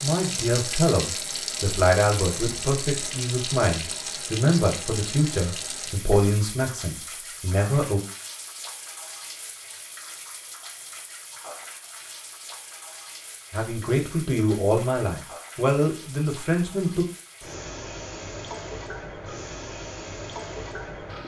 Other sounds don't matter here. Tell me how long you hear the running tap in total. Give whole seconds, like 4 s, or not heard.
21 s.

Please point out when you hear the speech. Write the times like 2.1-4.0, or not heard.
0.0-8.0, 13.5-17.1.